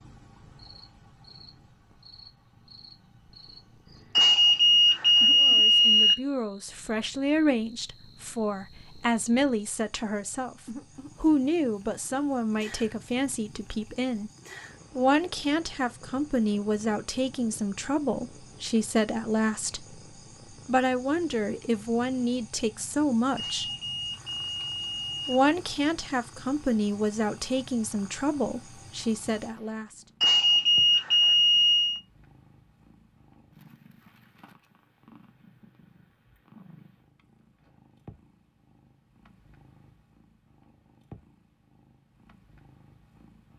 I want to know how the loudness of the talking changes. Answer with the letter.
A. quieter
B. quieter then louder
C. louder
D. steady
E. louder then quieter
D.